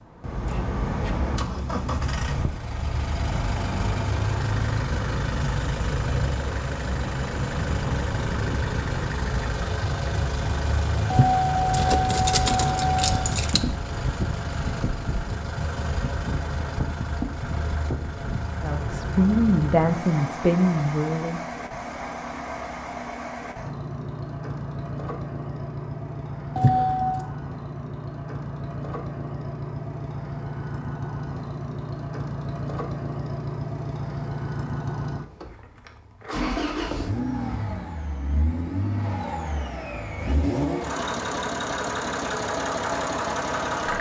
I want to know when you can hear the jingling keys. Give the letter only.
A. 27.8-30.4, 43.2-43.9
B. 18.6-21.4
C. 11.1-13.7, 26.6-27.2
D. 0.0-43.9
C.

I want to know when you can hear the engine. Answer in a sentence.
The engine can be heard from 0.0 to 43.9 s.